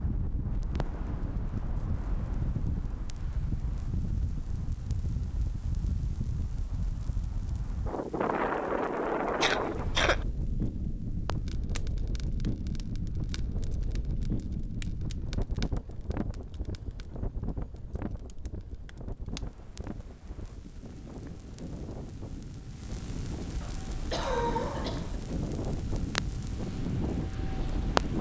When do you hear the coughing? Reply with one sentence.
The coughing can be heard from 9.4 to 10.2 s and from 23.6 to 25.2 s.